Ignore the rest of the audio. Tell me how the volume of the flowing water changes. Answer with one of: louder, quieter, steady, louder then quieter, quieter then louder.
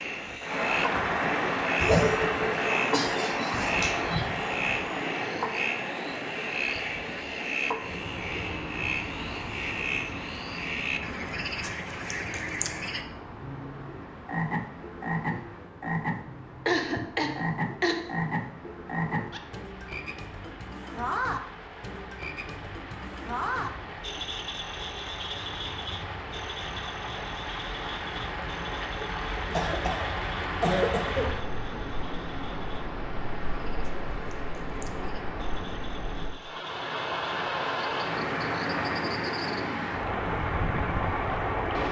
quieter then louder.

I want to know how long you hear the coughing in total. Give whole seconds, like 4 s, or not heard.
6 s.